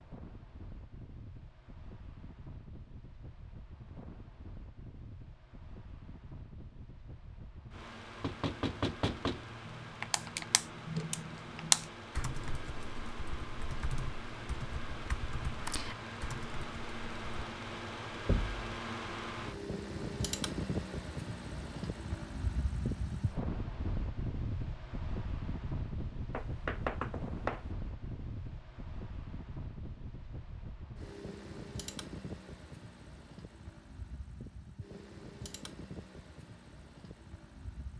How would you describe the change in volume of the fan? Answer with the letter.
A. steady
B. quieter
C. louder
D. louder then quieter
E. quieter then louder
D.